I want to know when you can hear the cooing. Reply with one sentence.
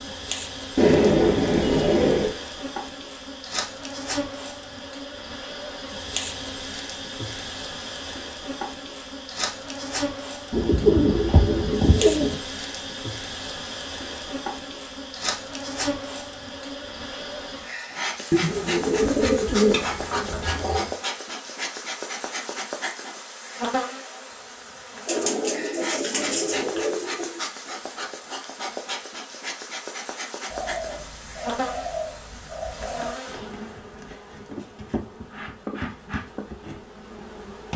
The cooing can be heard from 0.8 to 2.4 s, from 10.5 to 12.3 s, from 18.3 to 20.9 s, from 25.1 to 27.4 s and from 30.5 to 33.1 s.